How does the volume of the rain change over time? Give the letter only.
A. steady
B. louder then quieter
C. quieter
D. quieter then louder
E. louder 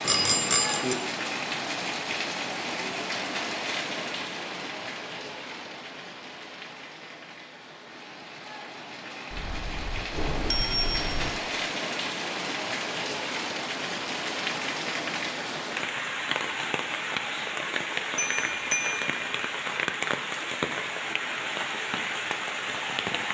D.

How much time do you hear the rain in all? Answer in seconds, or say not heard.
23 s.